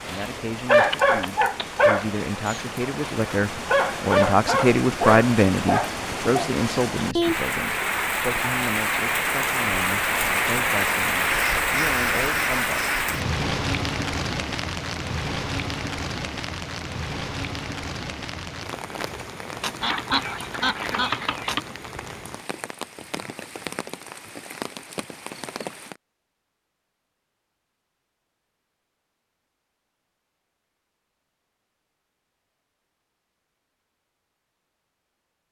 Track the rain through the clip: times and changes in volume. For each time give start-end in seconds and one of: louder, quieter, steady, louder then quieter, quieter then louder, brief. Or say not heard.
0.0-26.0 louder then quieter.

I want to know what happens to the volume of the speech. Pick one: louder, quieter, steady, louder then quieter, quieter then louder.
louder then quieter.